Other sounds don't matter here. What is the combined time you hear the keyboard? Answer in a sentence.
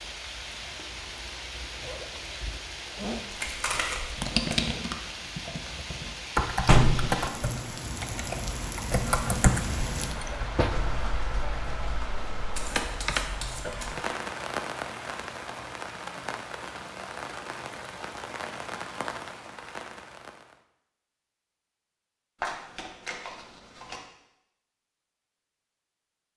You can hear the keyboard for 9 seconds altogether.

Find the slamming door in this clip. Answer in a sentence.
You can hear the slamming door from 6.7 to 7.2 s.